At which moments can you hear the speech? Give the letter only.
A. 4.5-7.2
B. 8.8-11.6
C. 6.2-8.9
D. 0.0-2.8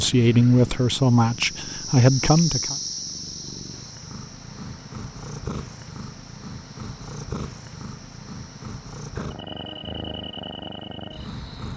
D.